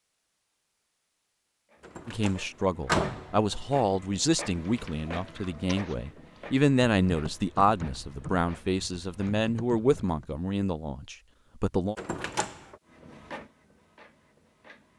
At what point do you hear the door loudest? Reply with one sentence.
The volume of the door peaks at 3 seconds.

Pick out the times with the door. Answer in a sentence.
You can hear the door from 1.9 to 3.4 s and from 11.9 to 12.8 s.